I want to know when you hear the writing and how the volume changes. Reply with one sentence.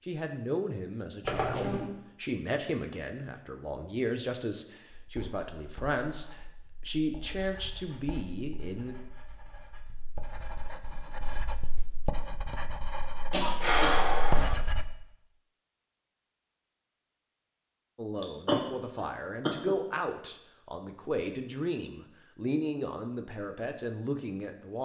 You can hear the writing from 5.0 to 14.8 s, getting louder.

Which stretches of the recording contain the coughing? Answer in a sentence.
The coughing can be heard from 1.2 to 1.9 s, from 13.3 to 14.6 s and from 18.2 to 19.8 s.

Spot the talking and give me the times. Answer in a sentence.
The talking can be heard from 0.1 to 8.9 s and from 17.9 to 24.8 s.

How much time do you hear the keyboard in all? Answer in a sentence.
The keyboard can't be heard in this clip.